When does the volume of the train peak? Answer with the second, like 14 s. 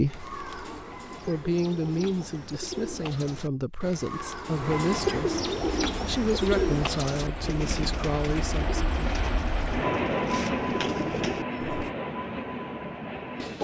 10 s.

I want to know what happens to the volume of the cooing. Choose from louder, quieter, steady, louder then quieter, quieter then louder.
louder then quieter.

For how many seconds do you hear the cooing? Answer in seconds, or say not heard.
12 s.